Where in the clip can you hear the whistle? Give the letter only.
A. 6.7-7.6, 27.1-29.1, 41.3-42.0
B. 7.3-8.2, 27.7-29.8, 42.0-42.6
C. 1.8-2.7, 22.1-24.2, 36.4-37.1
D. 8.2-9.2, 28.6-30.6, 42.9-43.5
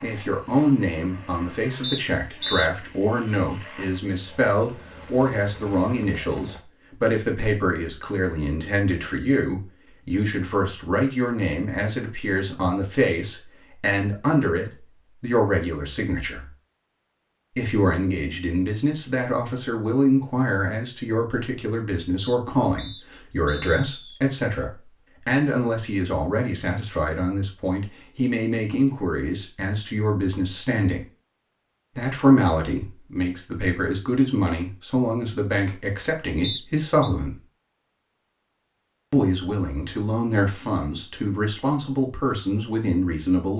C.